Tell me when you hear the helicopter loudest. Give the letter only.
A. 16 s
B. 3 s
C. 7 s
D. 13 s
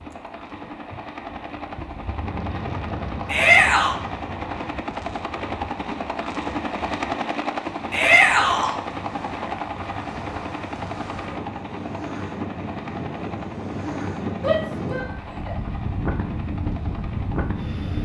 C.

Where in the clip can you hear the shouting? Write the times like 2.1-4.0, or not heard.
3.2-4.0, 7.9-8.8, 14.4-15.6.